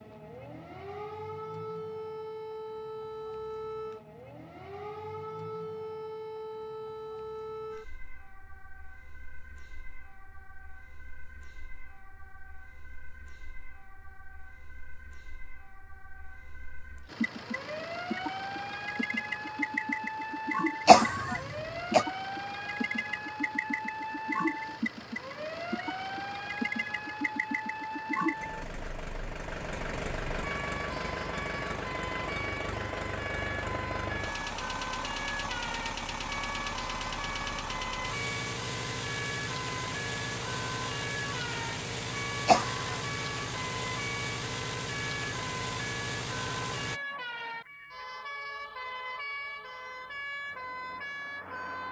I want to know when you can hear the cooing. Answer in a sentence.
You can't hear the cooing here.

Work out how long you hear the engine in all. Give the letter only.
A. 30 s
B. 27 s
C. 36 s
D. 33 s
A.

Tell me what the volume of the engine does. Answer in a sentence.
The loudness of the engine stays about the same.